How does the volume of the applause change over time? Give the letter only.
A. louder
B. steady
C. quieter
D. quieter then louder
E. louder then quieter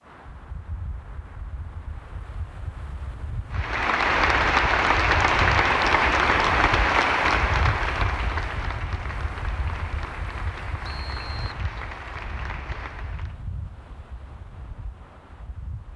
C.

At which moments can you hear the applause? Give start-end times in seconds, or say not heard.
3.5-13.4.